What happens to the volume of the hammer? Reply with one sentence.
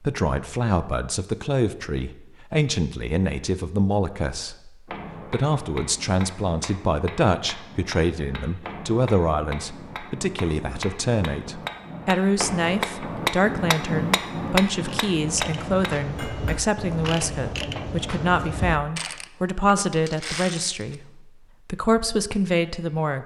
The volume of the hammer goes up.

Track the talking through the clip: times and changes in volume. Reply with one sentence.
You can hear the talking from 0.0 to 4.7 s, at a steady volume; and from 5.3 to 23.2 s, at a steady volume.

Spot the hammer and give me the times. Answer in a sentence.
You can hear the hammer from 4.8 to 16.6 s.